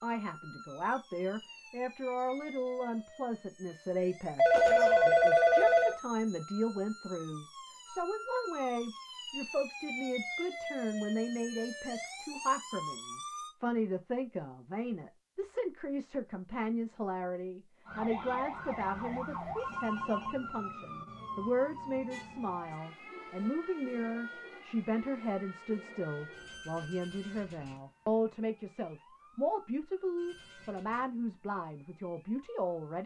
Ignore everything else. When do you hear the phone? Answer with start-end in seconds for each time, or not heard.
4.3-6.0, 18.6-20.4.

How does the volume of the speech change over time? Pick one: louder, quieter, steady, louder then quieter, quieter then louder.
steady.